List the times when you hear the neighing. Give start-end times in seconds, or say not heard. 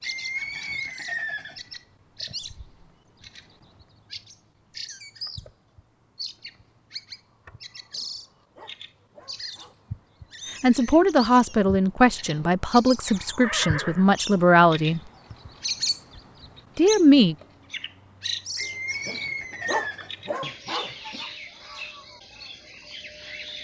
0.0-1.8, 13.4-14.1, 18.6-20.3.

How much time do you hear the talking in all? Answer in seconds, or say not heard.
5 s.